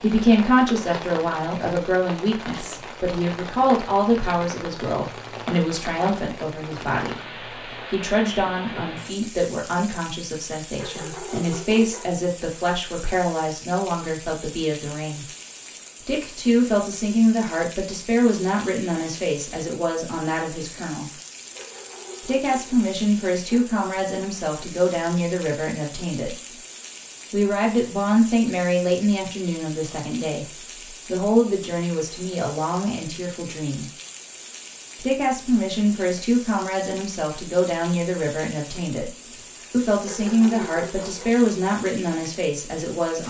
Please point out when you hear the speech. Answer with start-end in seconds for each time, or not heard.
0.0-15.2, 16.1-21.1, 22.2-26.6, 27.3-33.9, 35.0-43.2.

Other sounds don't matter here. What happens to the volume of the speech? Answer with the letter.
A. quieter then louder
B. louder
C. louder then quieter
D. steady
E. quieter
D.